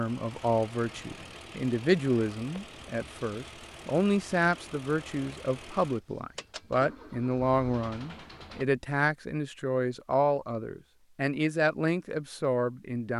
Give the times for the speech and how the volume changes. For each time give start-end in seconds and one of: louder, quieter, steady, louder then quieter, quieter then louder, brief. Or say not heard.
0.0-13.1 steady.